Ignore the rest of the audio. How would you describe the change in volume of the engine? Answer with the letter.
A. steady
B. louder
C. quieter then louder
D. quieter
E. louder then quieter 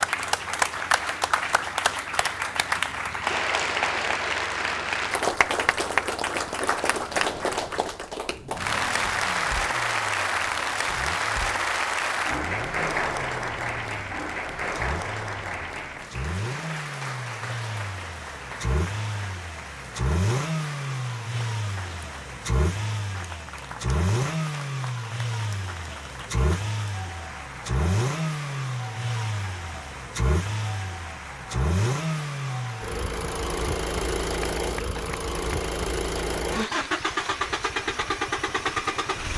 B.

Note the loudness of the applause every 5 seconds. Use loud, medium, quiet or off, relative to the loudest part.
loud, loud, loud, medium, quiet, quiet, quiet, quiet.